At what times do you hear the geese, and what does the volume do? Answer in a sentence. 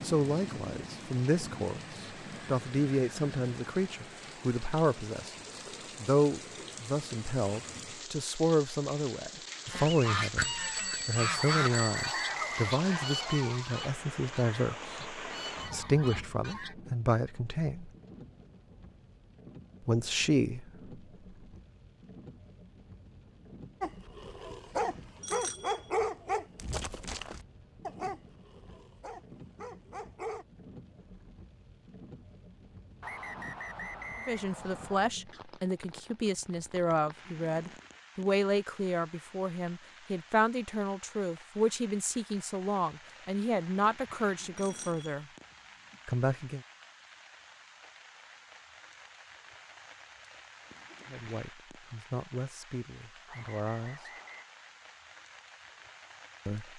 You can hear the geese from 9.7 to 16.8 s, getting quieter.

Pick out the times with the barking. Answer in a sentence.
The barking can be heard from 23.8 to 30.4 s.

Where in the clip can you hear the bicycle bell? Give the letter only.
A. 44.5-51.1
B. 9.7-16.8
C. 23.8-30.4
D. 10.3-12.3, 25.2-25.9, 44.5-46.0
D.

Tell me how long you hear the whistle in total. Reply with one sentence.
You can hear the whistle for 5 seconds altogether.